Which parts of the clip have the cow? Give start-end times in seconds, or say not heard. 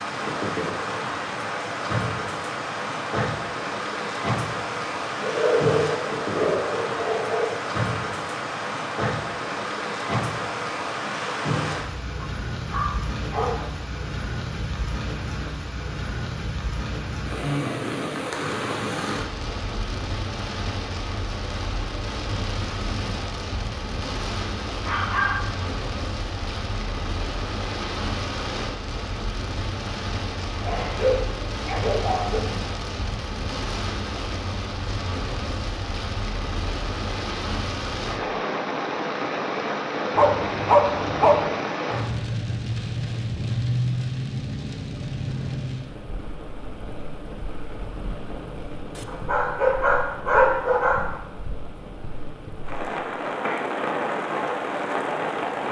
not heard.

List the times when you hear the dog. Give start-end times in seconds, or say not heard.
5.2-7.5, 12.2-13.8, 24.9-25.5, 30.6-32.4, 40.1-41.5, 49.0-51.1.